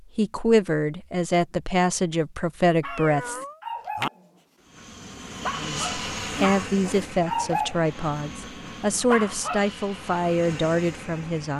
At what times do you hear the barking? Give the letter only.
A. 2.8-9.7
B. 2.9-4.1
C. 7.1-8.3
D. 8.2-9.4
A.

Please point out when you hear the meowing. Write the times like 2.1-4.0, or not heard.
2.9-4.1.